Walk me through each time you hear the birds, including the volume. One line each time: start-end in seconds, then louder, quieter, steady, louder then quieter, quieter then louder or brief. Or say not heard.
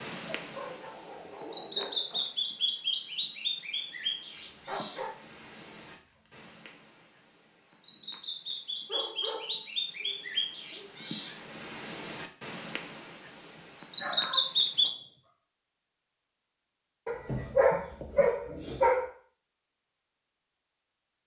0.0-14.9 quieter then louder.